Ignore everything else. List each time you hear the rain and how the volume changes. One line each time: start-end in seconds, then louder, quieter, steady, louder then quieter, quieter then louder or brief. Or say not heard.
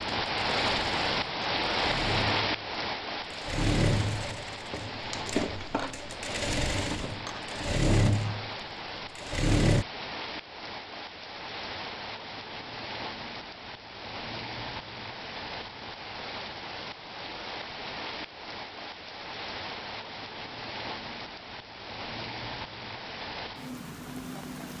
0.0-24.7 quieter.